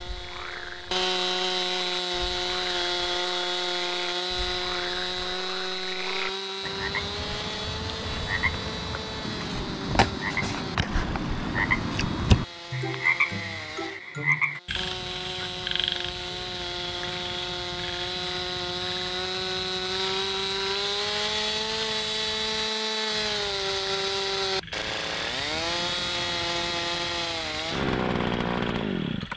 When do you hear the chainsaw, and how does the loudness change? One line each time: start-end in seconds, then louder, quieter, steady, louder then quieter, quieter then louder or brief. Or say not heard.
0.0-29.3 quieter then louder.